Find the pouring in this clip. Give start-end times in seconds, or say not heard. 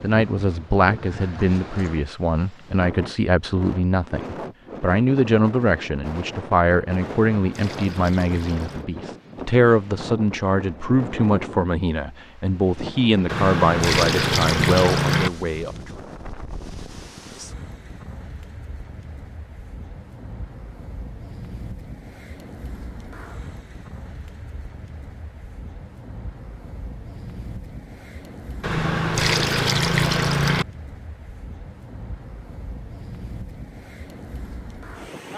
7.0-8.8, 13.2-15.3, 28.6-30.6.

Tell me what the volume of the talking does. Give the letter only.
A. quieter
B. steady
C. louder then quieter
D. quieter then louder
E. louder
B.